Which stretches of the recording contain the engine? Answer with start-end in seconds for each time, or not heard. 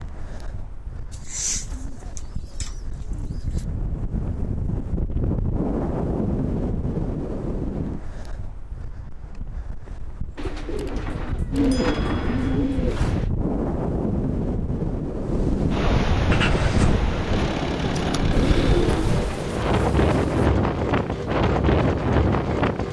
16.3-22.8.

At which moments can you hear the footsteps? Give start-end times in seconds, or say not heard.
not heard.